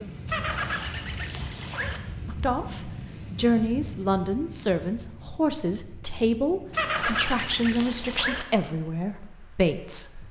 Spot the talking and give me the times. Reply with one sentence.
You can hear the talking from 2.2 to 10.2 s.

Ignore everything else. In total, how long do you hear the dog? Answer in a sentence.
You can't hear the dog here.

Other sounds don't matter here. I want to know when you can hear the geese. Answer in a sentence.
You can hear the geese from 0.2 to 2.0 s and from 6.7 to 8.4 s.